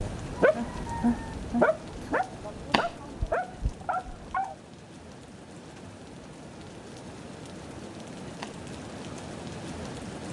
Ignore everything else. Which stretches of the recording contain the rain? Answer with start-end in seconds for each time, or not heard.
0.0-10.2.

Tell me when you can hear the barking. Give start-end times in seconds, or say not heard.
0.1-4.5.